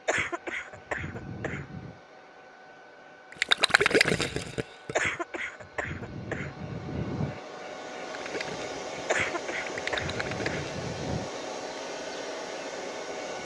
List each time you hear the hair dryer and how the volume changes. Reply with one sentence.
The hair dryer can be heard from 0.0 to 13.3 s, getting louder.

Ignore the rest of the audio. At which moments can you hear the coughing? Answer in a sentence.
The coughing can be heard from 0.1 to 1.9 s, from 5.0 to 7.4 s and from 9.1 to 11.3 s.